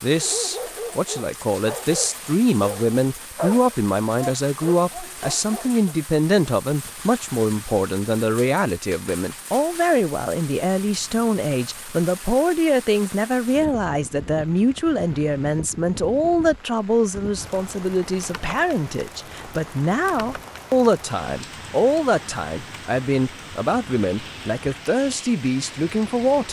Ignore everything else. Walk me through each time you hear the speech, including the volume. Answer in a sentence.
You can hear the speech from 0.0 to 26.4 s, at a steady volume.